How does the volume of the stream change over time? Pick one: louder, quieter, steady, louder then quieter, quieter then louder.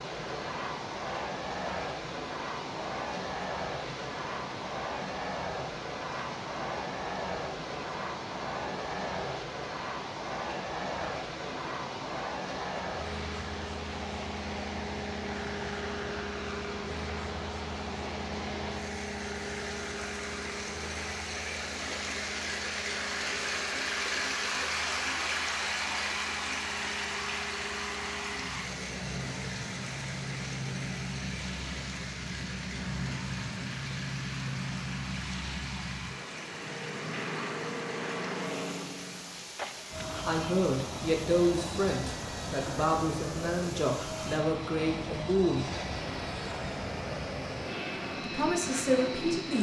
louder then quieter.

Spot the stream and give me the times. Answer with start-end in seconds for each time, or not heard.
0.0-49.5.